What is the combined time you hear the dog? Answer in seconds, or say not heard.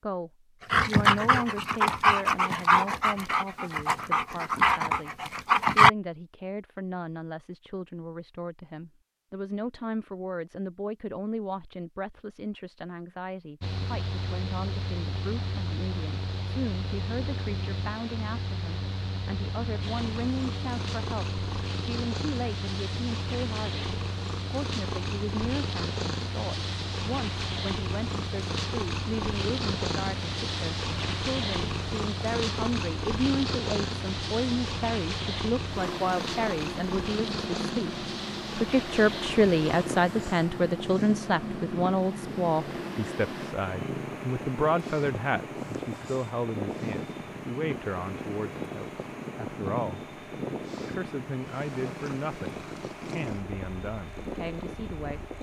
5 s.